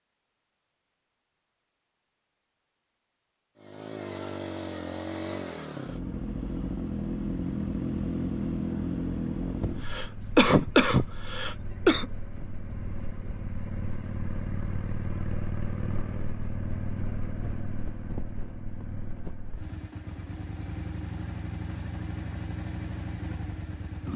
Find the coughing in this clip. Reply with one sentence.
You can hear the coughing from 9.6 to 12.1 s.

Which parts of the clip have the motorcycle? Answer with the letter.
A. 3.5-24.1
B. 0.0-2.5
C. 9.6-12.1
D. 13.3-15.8
A.